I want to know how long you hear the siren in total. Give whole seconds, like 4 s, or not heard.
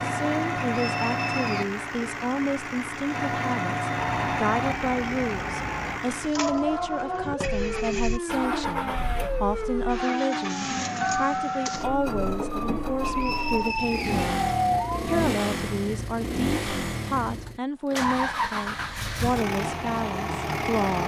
11 s.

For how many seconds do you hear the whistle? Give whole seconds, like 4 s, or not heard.
2 s.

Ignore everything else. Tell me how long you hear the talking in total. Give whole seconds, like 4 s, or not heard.
20 s.